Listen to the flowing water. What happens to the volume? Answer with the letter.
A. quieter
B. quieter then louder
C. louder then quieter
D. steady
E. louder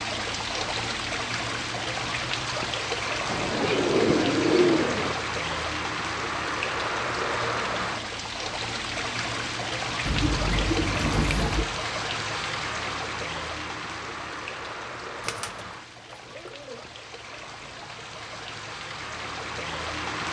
A.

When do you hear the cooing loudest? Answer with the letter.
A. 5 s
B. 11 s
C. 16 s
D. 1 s
A.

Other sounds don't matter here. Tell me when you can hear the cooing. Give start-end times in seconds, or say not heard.
3.2-5.2, 10.1-11.7, 15.2-16.8.